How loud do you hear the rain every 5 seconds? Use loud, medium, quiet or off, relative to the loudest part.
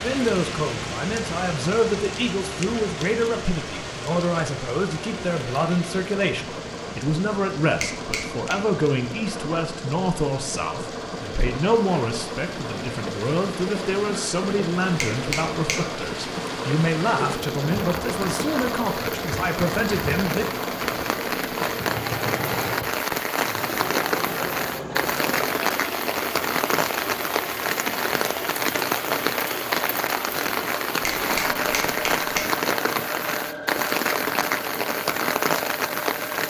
medium, quiet, quiet, medium, loud, loud, loud, loud.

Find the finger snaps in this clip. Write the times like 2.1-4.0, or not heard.
7.8-8.5, 14.9-15.8, 31.0-32.5.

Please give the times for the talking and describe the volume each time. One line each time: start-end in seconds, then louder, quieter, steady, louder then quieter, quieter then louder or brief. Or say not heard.
0.0-20.6 steady.